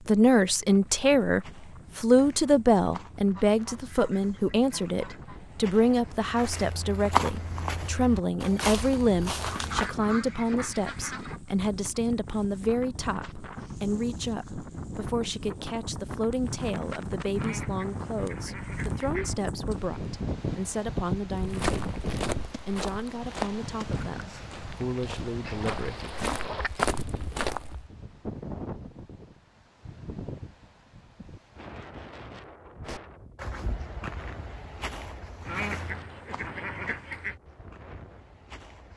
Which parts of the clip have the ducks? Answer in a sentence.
You can hear the ducks from 3.4 to 5.4 s, from 9.5 to 11.4 s, from 17.4 to 19.4 s, from 25.4 to 26.7 s and from 35.5 to 37.4 s.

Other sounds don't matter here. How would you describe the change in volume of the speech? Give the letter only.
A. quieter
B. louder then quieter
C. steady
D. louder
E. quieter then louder
A.